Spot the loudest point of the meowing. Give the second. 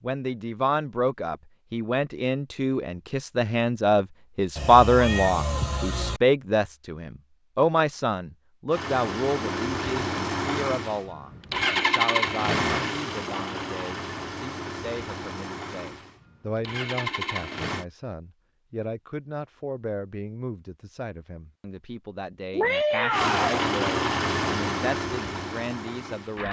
23 s.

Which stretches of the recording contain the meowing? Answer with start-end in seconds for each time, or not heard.
4.5-6.2, 22.5-23.6.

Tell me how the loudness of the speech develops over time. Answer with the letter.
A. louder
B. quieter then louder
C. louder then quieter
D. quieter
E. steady
D.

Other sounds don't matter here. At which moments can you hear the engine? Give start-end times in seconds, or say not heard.
8.7-17.9, 23.1-26.4.